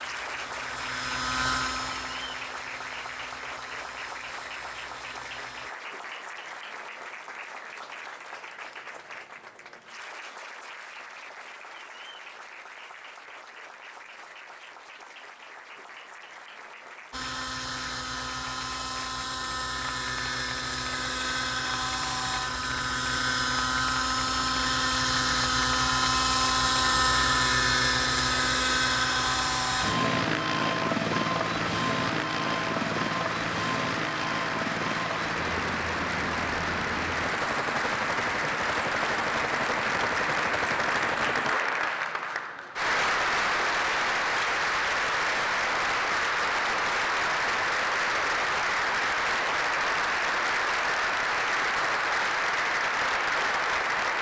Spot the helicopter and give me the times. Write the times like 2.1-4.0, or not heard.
0.0-5.8, 17.1-41.6.